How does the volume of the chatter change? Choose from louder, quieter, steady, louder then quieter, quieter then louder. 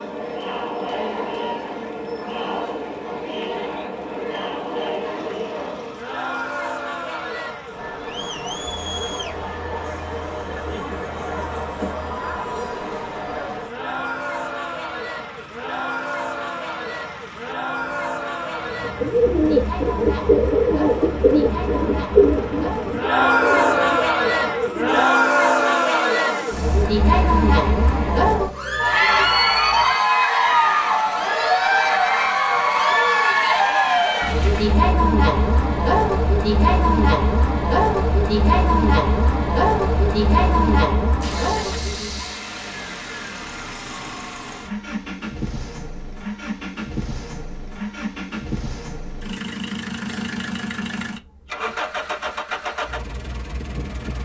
louder.